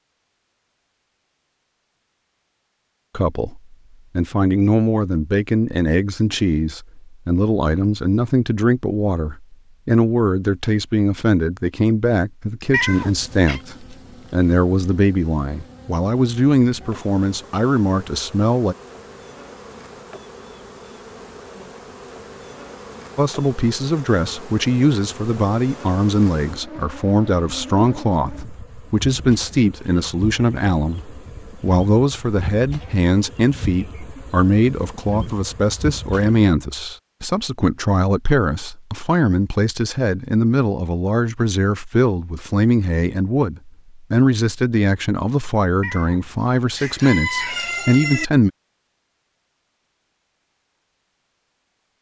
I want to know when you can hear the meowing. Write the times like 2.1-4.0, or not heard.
12.7-13.6, 45.8-46.5.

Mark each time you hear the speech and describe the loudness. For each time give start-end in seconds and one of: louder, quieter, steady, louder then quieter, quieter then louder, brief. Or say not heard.
3.1-18.8 steady
23.1-48.5 steady.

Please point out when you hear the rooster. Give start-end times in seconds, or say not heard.
46.8-48.2.